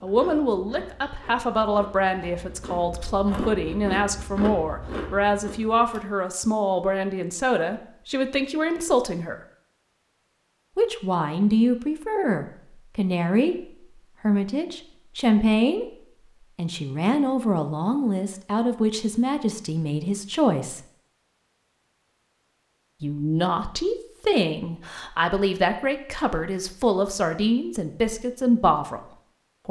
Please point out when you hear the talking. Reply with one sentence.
The talking can be heard from 0.0 to 9.4 s, from 10.8 to 15.9 s, from 16.6 to 20.9 s and from 23.0 to 29.6 s.